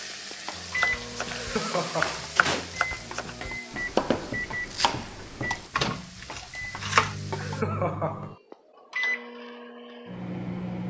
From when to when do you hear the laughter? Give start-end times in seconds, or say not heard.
1.3-2.3, 7.3-8.3.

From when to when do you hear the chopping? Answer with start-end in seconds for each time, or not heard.
0.6-7.2.